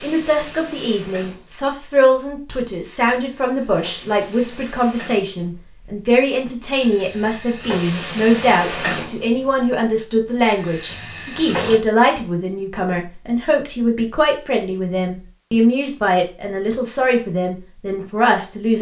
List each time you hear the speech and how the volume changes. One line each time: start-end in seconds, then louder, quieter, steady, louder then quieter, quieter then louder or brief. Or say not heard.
0.0-18.7 steady.